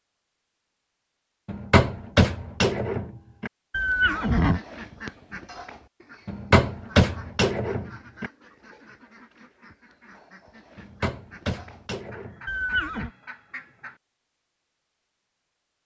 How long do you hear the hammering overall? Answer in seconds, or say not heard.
6 s.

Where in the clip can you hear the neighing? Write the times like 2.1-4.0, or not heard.
3.7-4.6, 12.4-13.1.